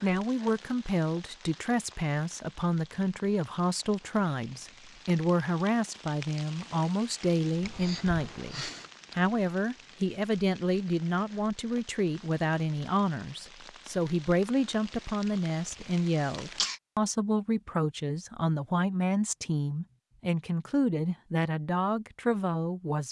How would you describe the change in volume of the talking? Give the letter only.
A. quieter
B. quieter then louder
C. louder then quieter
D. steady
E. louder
D.